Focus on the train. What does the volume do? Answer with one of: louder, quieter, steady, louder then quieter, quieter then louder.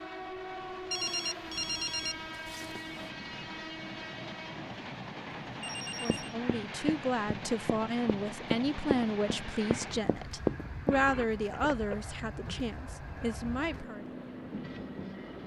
steady.